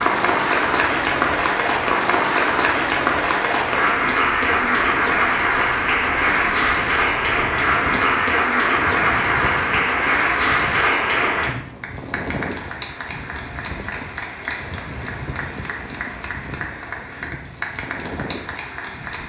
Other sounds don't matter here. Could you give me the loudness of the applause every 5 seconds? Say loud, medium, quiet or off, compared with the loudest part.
loud, loud, medium, quiet.